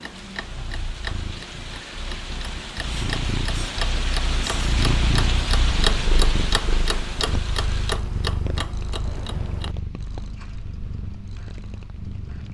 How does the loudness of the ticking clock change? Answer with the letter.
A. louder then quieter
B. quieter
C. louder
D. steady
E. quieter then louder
A.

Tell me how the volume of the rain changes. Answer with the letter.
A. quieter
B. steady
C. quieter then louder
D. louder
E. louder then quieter
E.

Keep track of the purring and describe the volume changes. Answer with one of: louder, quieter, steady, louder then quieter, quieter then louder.
louder then quieter.